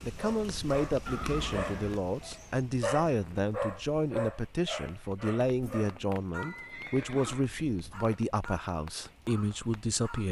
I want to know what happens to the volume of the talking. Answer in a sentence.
The volume of the talking stays about the same.